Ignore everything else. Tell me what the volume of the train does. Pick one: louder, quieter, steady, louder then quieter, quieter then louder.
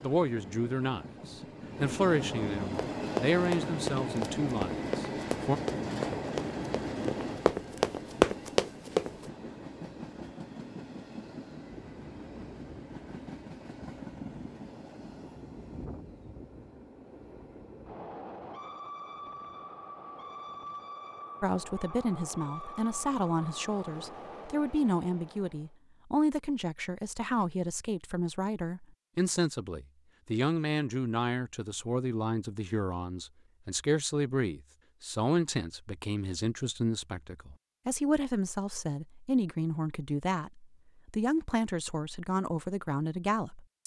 quieter.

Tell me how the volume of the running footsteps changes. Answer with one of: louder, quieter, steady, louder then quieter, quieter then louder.
louder.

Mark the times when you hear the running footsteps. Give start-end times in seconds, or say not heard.
3.0-9.1.